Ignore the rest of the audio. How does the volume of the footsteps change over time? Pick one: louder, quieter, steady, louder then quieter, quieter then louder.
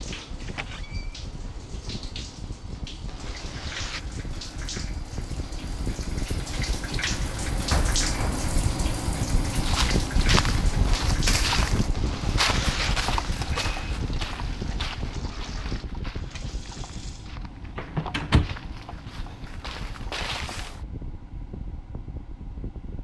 quieter then louder.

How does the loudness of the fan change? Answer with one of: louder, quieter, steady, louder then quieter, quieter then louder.
louder then quieter.